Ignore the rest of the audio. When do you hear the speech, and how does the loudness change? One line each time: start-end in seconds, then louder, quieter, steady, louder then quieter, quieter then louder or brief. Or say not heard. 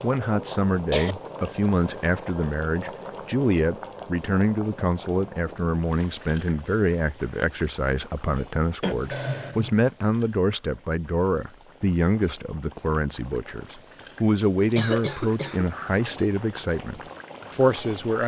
0.0-18.2 steady.